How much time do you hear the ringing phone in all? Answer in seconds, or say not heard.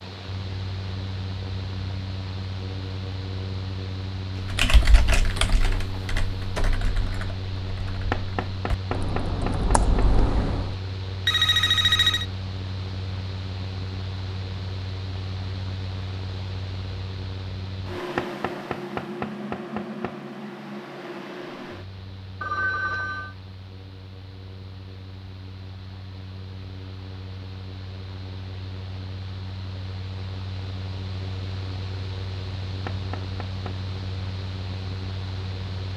2 s.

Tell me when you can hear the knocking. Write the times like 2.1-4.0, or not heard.
8.1-9.8, 18.1-20.1, 32.9-33.8.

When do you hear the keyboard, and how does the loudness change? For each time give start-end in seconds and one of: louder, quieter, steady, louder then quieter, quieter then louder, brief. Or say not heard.
4.5-10.8 quieter then louder.